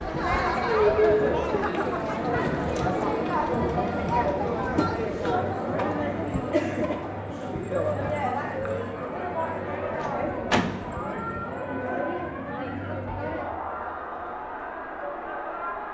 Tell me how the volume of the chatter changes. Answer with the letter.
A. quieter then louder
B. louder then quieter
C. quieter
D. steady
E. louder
C.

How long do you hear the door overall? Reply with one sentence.
You can hear the door for 2 seconds altogether.